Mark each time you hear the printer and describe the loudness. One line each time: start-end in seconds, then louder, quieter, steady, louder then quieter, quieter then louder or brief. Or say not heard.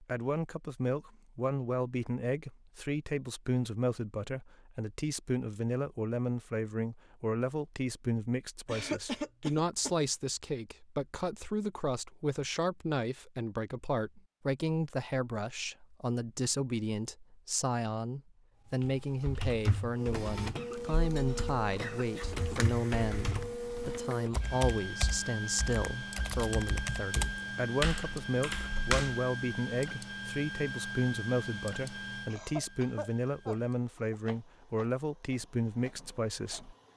19.9-36.9 quieter.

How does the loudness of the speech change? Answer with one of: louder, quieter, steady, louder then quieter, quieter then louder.
steady.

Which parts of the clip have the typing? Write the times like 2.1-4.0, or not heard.
18.8-29.2.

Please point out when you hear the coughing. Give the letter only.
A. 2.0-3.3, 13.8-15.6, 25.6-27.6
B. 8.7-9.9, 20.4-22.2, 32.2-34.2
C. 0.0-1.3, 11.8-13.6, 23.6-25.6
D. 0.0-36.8
B.